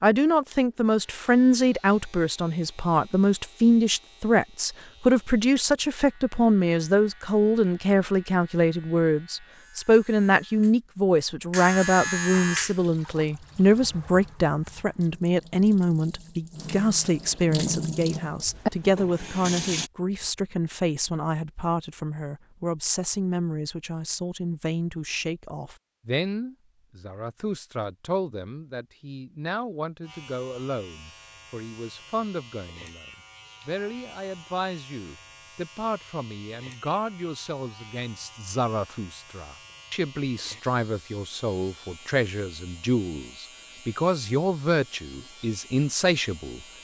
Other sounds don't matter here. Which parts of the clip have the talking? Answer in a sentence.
The talking can be heard from 0.0 to 46.6 s.